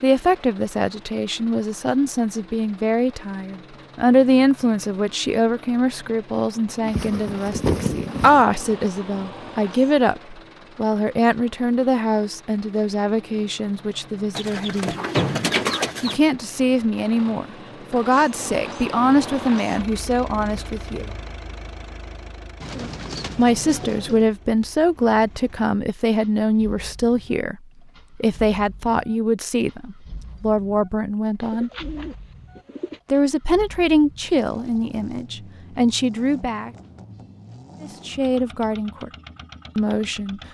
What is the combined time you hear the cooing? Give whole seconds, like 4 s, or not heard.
7 s.